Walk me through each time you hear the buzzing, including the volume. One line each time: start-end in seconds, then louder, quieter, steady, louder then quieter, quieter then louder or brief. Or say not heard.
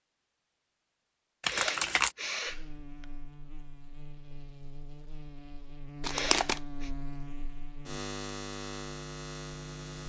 2.5-10.0 louder.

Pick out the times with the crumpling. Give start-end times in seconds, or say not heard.
1.4-2.1, 6.0-6.6.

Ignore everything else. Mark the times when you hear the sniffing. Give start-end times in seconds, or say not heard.
1.4-3.0, 6.0-6.9.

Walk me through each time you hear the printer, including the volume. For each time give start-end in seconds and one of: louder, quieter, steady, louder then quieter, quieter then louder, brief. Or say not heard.
not heard.